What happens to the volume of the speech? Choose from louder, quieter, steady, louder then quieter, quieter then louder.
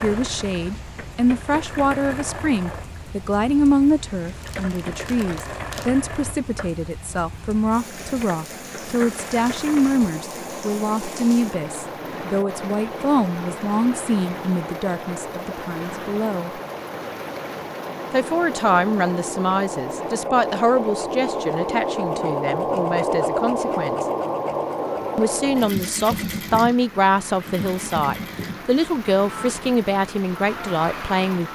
steady.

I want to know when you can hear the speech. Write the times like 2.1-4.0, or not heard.
0.0-16.6, 18.1-24.1, 25.1-31.4.